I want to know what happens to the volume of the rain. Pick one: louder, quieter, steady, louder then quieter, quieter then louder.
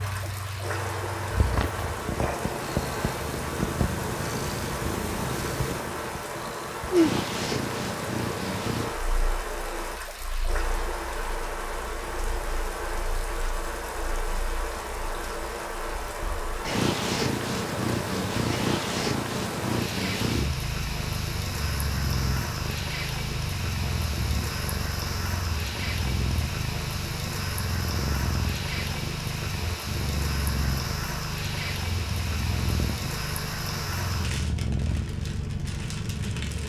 steady.